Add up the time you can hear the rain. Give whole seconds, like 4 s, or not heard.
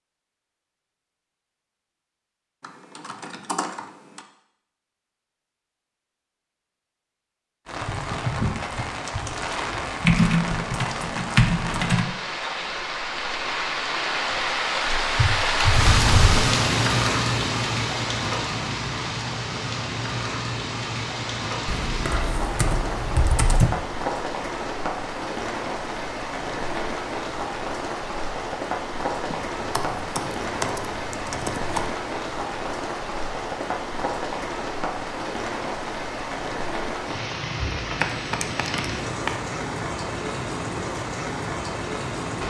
35 s.